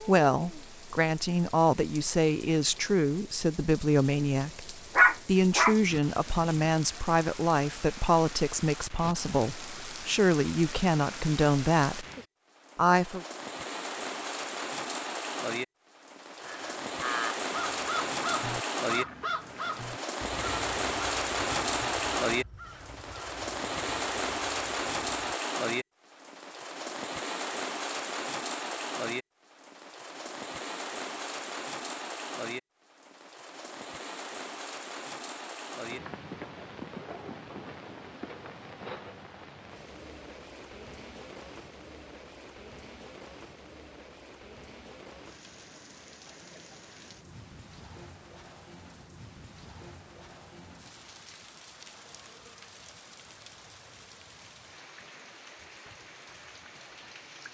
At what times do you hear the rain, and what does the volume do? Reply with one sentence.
You can hear the rain from 0.0 to 57.4 s, getting louder then quieter.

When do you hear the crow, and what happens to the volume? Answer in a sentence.
You can hear the crow from 16.4 to 25.4 s, getting quieter.